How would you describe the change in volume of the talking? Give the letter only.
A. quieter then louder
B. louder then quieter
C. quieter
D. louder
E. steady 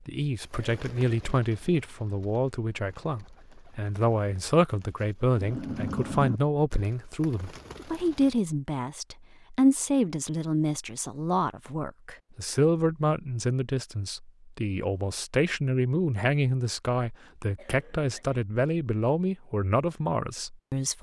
E.